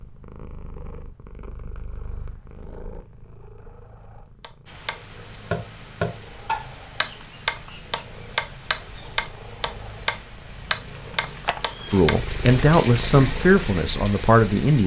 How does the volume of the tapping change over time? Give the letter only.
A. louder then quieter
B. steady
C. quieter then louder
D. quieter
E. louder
B.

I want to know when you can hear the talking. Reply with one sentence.
You can hear the talking from 11.9 to 14.8 s.